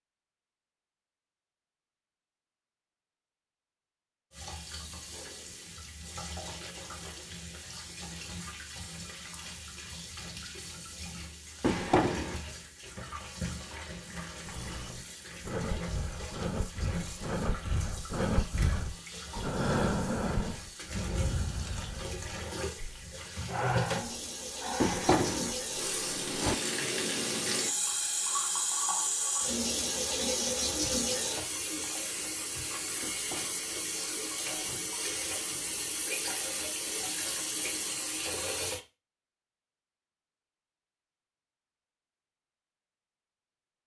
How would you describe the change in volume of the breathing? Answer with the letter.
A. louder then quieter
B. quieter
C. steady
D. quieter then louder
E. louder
A.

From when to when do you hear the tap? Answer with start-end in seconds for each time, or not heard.
4.3-38.8.